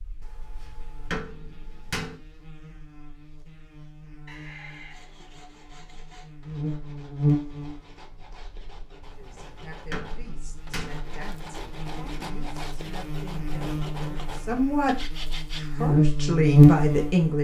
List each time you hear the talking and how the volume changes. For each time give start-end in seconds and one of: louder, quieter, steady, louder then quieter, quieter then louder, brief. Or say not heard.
9.2-17.4 louder.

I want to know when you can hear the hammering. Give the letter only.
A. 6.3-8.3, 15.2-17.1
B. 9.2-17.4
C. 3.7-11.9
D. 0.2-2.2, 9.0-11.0
D.